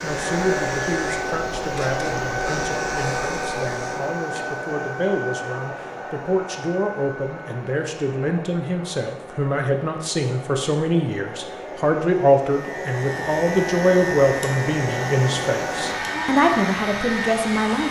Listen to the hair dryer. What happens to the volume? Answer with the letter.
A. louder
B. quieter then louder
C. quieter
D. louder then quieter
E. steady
B.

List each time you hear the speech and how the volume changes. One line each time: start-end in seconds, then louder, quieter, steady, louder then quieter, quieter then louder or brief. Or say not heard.
0.0-17.8 louder.